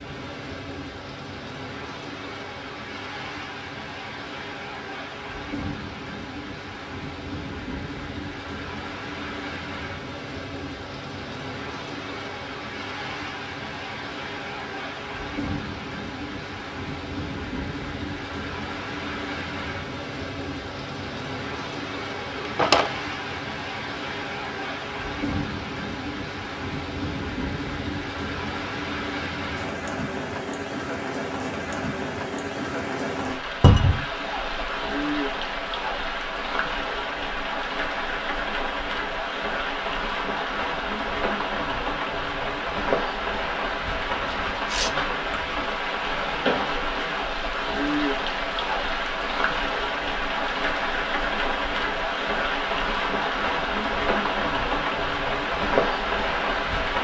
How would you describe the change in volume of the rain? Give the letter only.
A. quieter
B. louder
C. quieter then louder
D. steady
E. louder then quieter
B.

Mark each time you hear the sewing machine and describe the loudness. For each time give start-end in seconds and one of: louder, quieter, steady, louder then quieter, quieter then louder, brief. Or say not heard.
not heard.